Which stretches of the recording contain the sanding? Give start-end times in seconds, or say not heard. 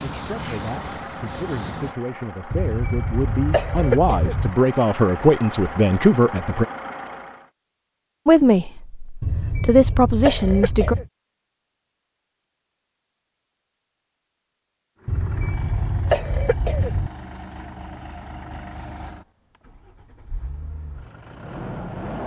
0.0-1.9.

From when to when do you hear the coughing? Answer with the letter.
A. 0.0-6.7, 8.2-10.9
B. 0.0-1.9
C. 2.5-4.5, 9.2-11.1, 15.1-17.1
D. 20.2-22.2
C.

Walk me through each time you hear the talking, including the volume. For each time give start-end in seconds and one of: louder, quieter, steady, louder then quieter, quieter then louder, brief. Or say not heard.
0.0-6.7 louder
8.2-10.9 brief.